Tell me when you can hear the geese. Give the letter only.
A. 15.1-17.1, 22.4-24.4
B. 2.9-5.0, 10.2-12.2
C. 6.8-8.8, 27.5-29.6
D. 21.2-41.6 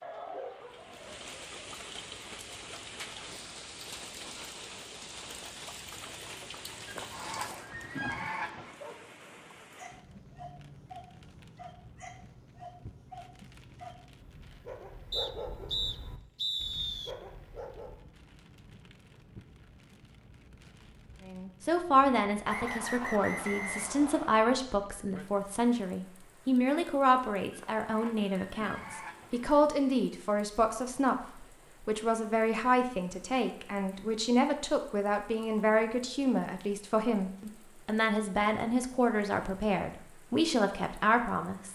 C.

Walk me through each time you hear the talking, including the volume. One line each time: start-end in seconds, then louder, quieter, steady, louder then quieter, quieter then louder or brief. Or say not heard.
21.2-41.6 steady.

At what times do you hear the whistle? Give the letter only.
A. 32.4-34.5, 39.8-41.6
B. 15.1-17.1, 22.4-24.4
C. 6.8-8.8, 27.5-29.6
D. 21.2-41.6
B.